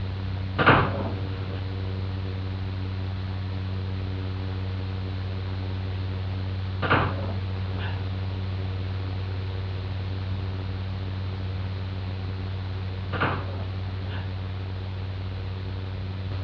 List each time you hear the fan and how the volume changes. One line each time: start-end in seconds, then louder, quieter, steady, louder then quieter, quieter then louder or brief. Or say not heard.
0.0-16.3 steady.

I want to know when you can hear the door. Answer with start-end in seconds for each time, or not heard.
0.6-1.6, 6.8-8.1, 13.1-14.3.